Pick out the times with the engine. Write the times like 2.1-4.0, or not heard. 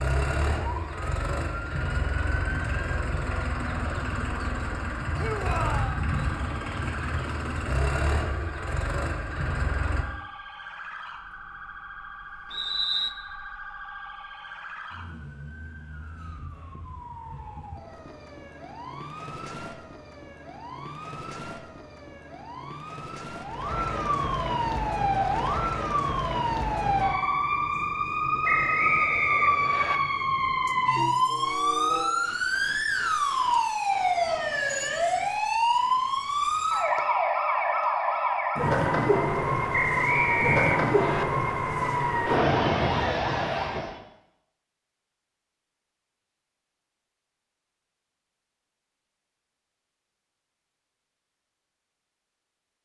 0.0-10.1.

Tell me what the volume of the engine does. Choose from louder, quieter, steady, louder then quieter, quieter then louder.
steady.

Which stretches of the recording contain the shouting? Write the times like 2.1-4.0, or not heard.
5.2-6.0.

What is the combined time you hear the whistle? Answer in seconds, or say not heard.
4 s.